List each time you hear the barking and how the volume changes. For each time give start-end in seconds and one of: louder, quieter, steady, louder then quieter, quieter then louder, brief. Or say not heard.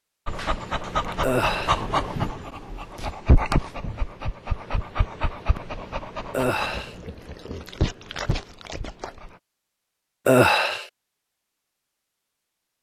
0.2-9.3 quieter.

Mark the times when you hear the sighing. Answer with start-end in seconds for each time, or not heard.
1.2-1.9, 6.3-7.0, 10.2-10.8.